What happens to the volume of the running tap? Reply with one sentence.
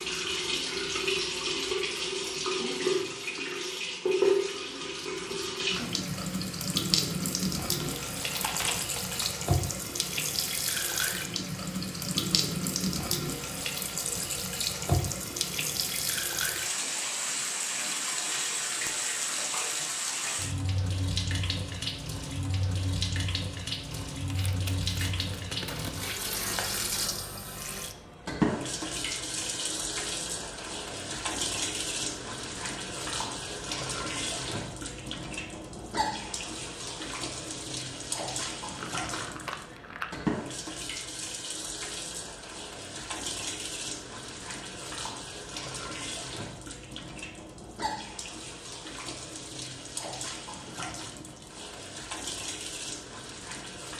The loudness of the running tap goes down.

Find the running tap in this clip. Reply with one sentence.
You can hear the running tap from 0.0 to 53.9 s.